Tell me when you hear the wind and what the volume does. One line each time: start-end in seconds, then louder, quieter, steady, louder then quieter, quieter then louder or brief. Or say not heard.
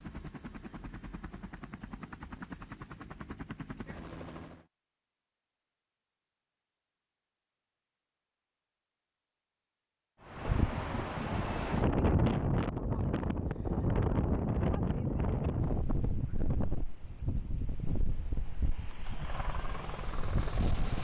10.2-20.9 quieter.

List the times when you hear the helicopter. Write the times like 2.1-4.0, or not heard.
0.0-4.7, 19.1-20.9.